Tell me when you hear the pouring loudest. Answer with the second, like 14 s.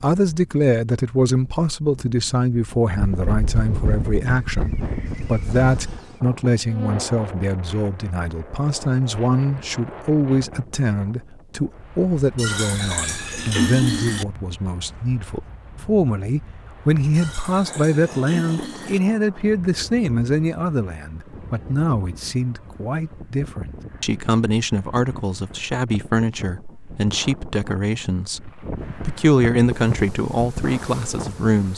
14 s.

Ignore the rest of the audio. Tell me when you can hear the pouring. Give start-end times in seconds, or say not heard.
12.3-14.2, 17.1-19.0.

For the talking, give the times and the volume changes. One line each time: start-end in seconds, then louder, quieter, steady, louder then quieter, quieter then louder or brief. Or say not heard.
0.0-31.7 steady.